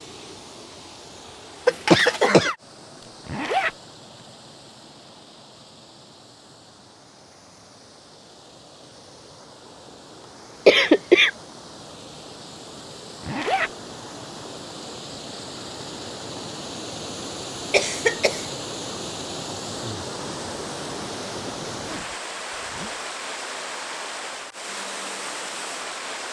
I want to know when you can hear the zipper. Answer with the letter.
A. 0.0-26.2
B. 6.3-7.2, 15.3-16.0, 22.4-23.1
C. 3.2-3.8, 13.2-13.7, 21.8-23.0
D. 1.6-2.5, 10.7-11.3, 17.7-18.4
C.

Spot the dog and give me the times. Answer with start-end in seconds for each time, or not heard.
not heard.